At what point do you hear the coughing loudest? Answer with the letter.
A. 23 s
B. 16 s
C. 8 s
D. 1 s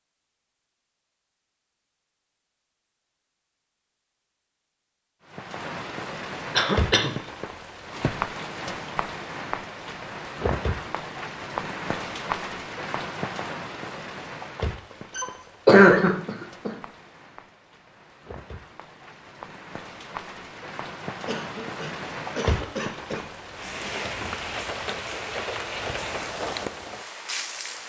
B.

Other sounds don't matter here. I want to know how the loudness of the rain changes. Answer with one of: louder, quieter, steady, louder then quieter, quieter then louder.
quieter then louder.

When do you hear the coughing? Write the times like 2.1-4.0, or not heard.
6.5-7.2, 15.2-16.7, 21.2-23.2.